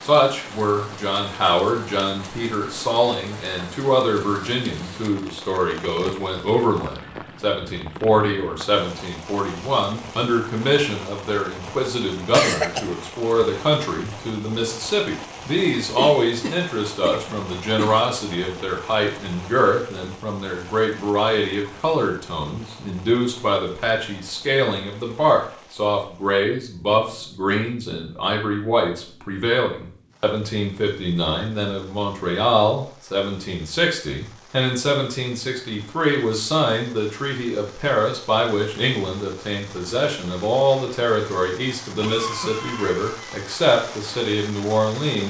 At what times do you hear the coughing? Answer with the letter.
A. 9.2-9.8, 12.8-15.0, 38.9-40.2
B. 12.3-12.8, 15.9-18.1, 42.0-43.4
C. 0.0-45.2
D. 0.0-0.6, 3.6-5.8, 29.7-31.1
B.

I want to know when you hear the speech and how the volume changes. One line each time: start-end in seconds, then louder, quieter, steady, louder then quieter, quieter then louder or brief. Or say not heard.
0.0-45.2 steady.